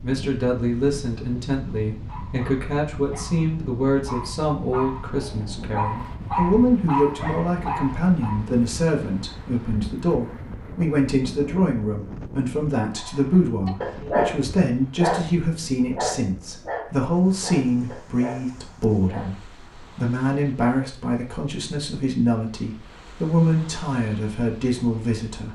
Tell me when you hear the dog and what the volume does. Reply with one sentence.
You can hear the dog from 1.9 to 8.4 s, getting louder; and from 12.9 to 19.5 s, getting quieter.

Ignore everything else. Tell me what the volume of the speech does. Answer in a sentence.
The loudness of the speech stays about the same.